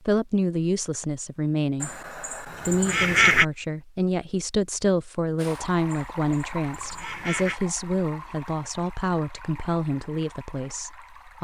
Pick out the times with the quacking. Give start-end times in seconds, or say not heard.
1.8-3.5, 5.9-7.6.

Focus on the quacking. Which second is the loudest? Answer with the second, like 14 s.
3 s.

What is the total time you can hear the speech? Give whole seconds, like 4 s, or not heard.
11 s.